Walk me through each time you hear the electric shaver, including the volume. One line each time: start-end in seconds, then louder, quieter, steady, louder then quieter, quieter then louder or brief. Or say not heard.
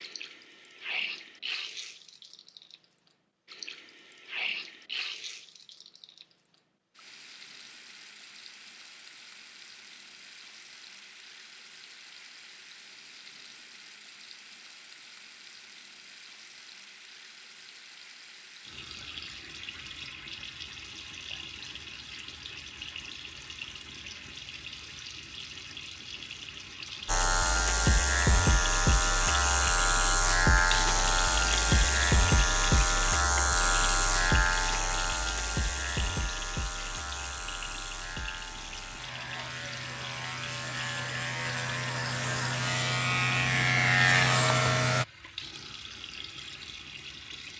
27.1-45.0 quieter then louder.